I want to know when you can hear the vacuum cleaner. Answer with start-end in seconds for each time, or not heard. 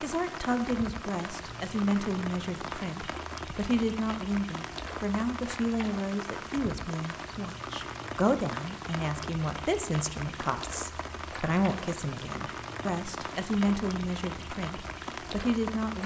not heard.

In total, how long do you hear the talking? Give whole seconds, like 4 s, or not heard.
16 s.